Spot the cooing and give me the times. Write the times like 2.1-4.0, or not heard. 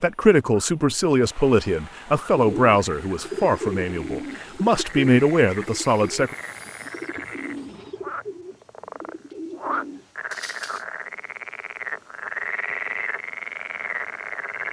2.3-10.8.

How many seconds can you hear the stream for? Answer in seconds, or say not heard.
not heard.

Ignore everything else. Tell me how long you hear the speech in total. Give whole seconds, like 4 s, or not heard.
6 s.